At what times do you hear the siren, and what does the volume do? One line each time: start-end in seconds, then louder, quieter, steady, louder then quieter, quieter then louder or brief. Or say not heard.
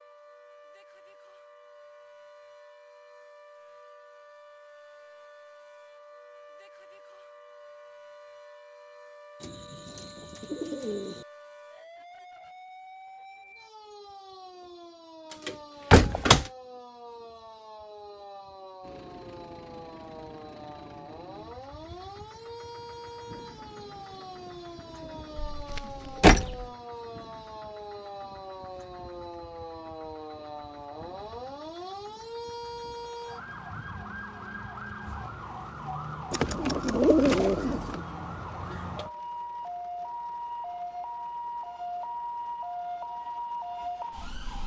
0.0-44.6 louder.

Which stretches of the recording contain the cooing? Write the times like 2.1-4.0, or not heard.
9.4-11.2, 23.6-26.4, 36.3-38.0.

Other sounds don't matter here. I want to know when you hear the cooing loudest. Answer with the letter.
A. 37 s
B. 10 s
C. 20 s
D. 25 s
A.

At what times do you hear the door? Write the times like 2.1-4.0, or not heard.
15.4-16.4, 25.4-26.6.